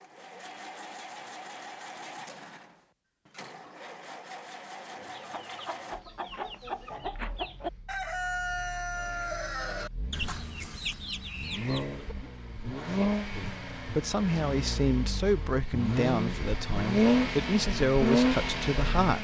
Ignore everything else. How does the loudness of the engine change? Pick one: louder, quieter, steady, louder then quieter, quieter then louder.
quieter then louder.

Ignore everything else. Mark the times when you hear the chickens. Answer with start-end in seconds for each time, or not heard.
5.0-12.4.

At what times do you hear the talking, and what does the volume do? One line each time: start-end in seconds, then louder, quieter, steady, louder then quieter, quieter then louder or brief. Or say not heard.
13.3-19.1 steady.